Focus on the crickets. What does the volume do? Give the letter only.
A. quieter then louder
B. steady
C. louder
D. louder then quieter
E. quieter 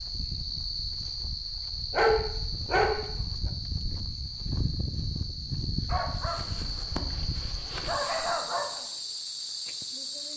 B.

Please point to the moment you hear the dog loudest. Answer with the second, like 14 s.
2 s.